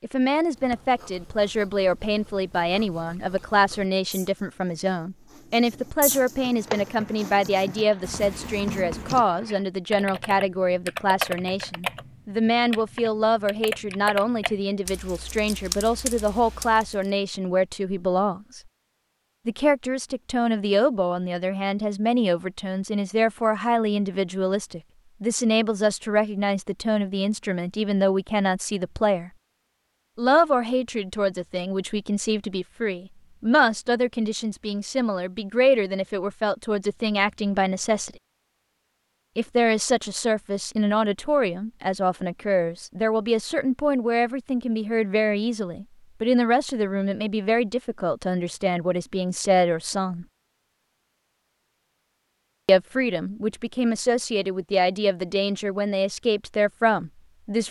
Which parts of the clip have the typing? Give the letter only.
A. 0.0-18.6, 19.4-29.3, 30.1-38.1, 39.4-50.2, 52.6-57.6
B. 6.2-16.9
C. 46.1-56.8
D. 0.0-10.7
B.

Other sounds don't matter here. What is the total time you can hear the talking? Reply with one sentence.
You can hear the talking for 52 seconds altogether.